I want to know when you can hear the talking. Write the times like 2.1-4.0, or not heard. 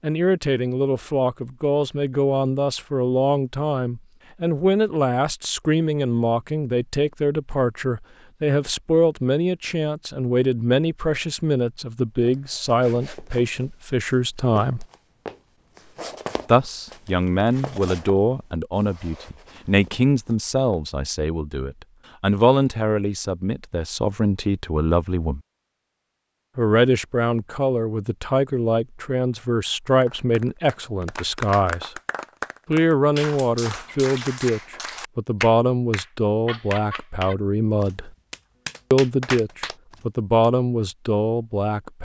0.0-14.8, 16.4-25.4, 26.6-31.9, 32.6-38.1, 38.9-41.9.